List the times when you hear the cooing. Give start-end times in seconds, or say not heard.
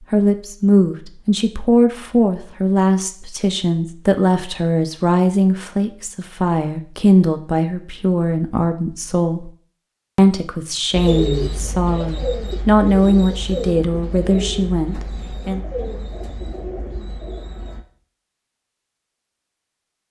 10.9-17.9.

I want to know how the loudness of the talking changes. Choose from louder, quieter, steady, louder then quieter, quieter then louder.
steady.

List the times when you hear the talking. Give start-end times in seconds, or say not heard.
0.1-9.5, 10.2-15.6.